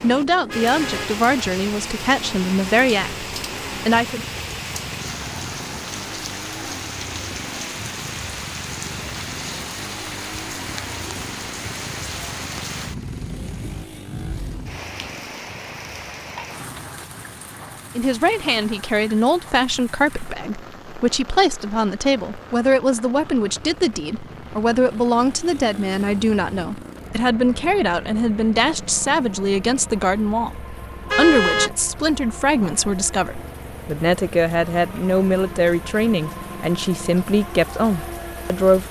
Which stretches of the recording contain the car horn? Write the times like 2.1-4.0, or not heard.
0.5-1.1, 31.1-31.7.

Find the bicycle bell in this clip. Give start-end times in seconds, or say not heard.
not heard.